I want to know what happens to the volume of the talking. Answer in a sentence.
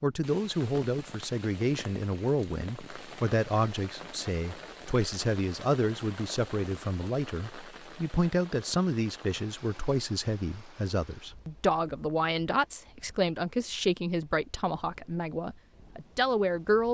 The loudness of the talking stays about the same.